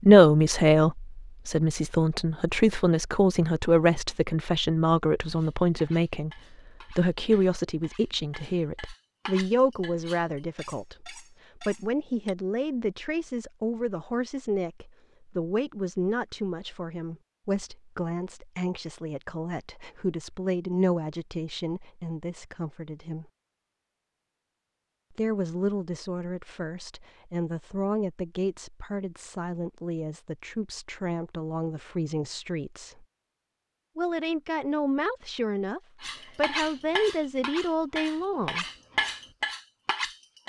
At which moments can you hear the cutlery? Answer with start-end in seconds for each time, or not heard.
5.2-12.3, 36.0-40.4.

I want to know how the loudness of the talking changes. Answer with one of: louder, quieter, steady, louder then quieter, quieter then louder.
quieter.